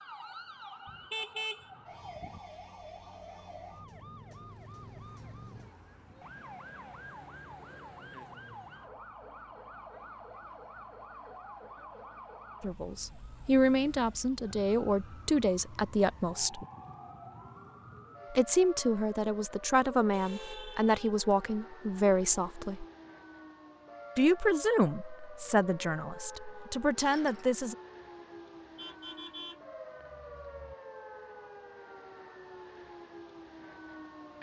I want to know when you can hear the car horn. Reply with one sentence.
The car horn can be heard from 0.8 to 2.4 s, from 20.1 to 20.9 s and from 28.8 to 30.8 s.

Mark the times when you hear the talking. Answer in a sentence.
You can hear the talking from 12.6 to 16.6 s, from 18.3 to 22.9 s and from 24.1 to 27.8 s.